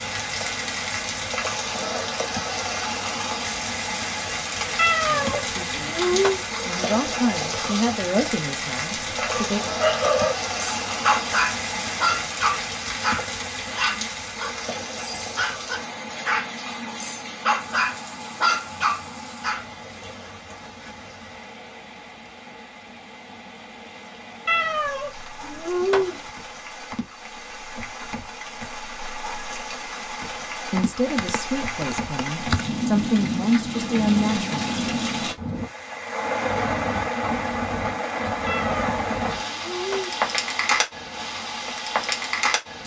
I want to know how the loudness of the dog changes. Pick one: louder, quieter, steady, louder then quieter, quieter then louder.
quieter then louder.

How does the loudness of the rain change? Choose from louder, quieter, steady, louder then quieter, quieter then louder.
quieter then louder.